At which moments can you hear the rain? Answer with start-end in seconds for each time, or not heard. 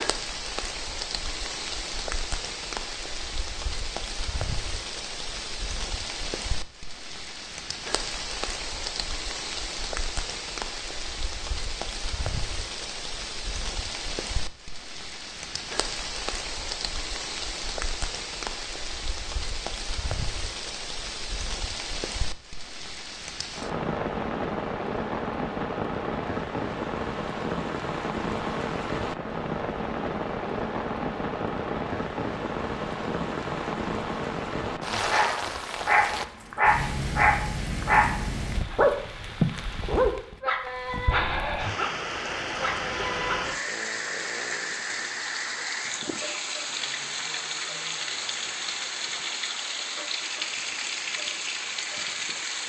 0.0-52.6.